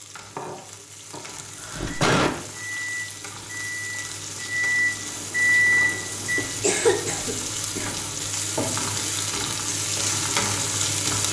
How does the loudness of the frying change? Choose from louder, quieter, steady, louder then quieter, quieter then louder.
louder.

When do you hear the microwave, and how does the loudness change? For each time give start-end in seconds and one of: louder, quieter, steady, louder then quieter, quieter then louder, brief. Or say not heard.
1.6-6.8 louder.